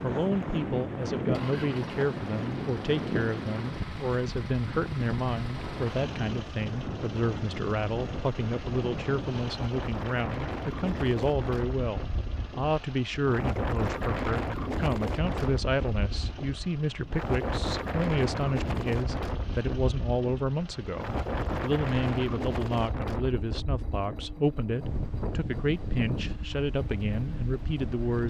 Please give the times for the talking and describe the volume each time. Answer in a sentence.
You can hear the talking from 0.0 to 28.2 s, at a steady volume.